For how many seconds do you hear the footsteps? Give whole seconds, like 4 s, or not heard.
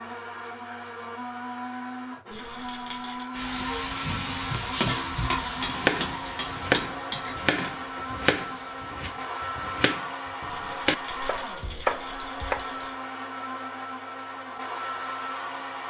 not heard.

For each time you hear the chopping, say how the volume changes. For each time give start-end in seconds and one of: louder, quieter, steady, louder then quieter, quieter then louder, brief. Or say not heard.
4.5-12.7 quieter then louder.